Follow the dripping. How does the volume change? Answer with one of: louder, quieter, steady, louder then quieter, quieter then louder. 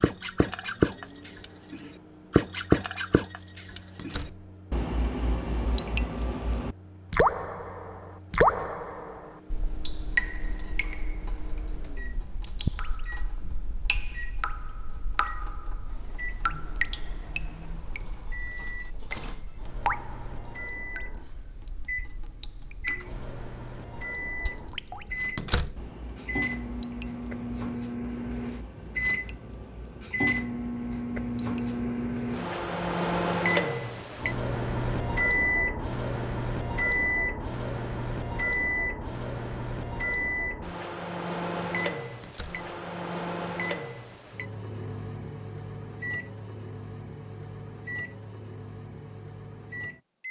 quieter.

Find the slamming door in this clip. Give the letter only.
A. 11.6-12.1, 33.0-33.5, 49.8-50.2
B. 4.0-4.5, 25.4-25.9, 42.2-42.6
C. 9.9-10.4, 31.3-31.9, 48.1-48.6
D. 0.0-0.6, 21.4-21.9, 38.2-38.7
B.